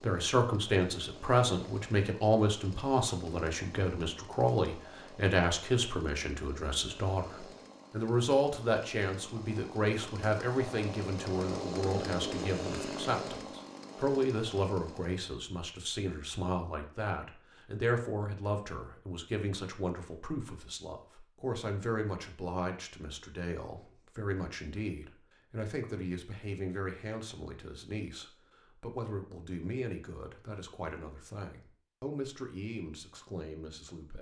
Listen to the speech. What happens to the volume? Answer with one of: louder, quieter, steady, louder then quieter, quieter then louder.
quieter.